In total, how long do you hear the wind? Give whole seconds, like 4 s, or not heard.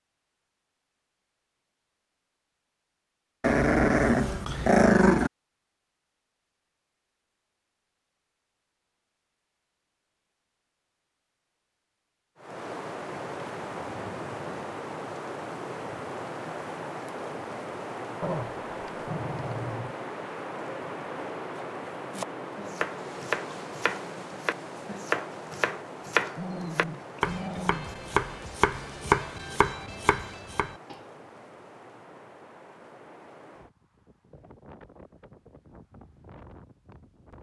25 s.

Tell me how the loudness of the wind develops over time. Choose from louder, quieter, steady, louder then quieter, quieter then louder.
quieter.